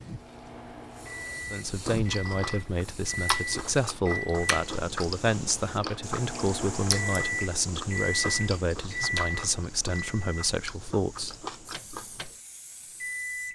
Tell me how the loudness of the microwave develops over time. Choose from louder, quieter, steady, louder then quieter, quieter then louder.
louder then quieter.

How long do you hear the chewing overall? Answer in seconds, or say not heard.
11 s.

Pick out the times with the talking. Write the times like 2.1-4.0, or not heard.
1.5-11.3.